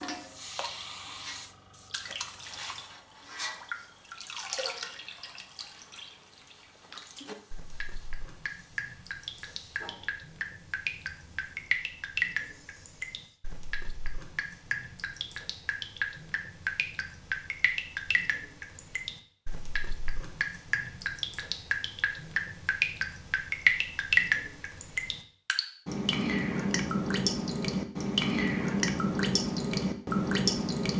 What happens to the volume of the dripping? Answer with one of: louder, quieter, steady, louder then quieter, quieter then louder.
louder.